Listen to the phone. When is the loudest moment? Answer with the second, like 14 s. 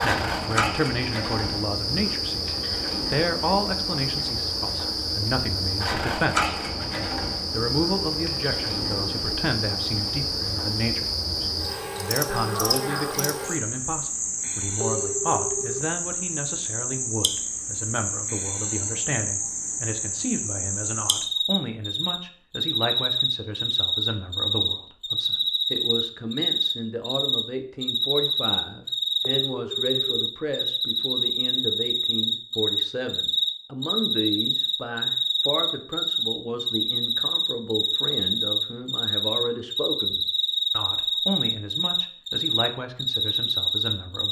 15 s.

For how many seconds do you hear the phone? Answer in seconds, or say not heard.
2 s.